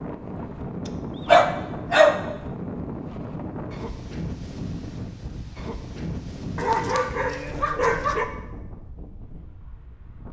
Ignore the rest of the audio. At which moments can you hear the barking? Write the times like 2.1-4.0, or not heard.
1.2-2.2, 6.5-8.2.